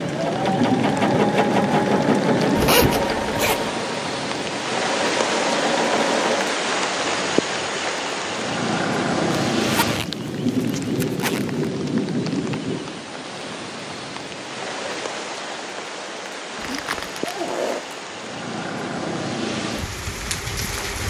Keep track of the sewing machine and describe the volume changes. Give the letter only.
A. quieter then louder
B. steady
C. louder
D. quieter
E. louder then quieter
A.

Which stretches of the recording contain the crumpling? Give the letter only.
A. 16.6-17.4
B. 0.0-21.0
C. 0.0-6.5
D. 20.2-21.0
A.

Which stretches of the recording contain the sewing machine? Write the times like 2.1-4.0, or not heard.
0.0-6.5.